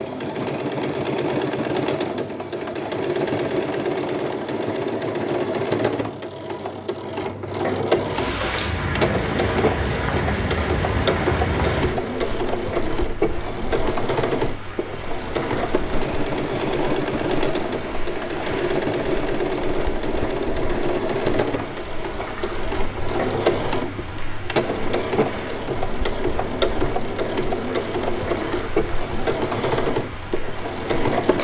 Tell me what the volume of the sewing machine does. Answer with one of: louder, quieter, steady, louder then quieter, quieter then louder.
steady.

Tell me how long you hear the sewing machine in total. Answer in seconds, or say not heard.
31 s.